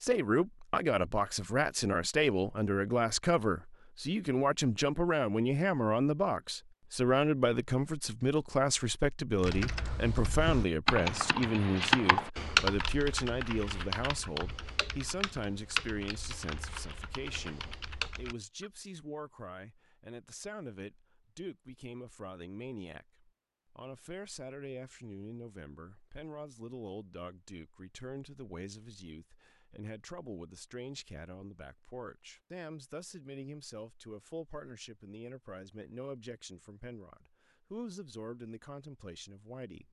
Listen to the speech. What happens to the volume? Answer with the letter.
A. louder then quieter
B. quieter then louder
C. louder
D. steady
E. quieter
E.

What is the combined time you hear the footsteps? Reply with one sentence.
The footsteps can't be heard in this clip.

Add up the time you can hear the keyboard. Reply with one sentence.
You can hear the keyboard for 9 seconds altogether.